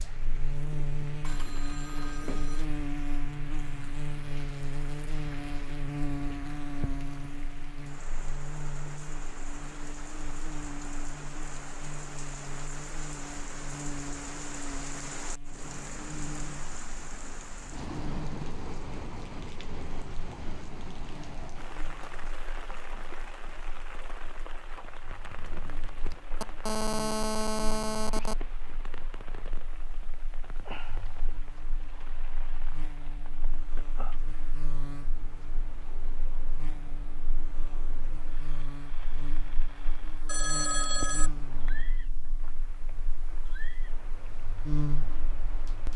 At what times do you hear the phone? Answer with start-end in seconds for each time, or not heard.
1.2-2.6, 26.4-28.4, 40.2-41.8.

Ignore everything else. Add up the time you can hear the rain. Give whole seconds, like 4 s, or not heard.
46 s.